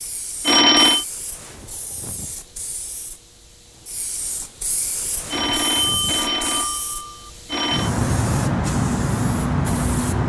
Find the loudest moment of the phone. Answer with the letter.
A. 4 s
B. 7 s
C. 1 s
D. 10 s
C.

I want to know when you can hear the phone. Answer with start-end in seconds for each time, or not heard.
0.5-1.1, 5.3-7.9.